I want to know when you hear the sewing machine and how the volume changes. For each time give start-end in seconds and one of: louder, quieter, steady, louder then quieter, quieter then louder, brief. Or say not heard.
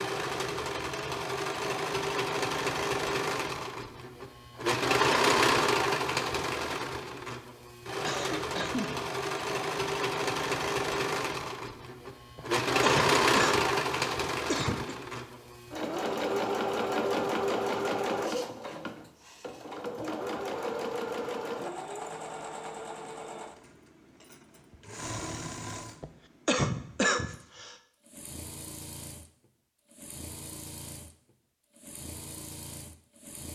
0.0-33.4 quieter.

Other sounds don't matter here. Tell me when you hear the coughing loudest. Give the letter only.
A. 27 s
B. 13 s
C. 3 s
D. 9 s
A.